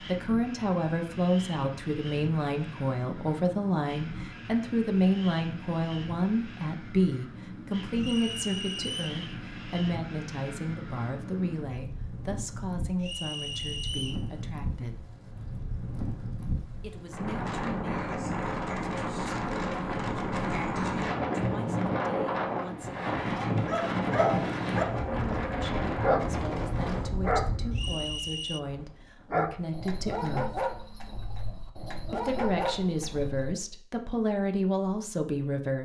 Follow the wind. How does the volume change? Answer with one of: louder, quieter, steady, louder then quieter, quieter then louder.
louder.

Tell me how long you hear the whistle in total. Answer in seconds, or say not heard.
3 s.